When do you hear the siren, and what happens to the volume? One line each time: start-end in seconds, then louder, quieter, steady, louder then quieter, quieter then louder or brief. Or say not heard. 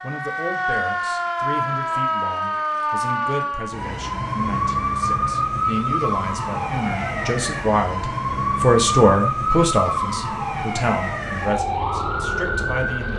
0.0-13.1 steady.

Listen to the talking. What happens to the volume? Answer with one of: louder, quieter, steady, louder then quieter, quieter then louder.
louder then quieter.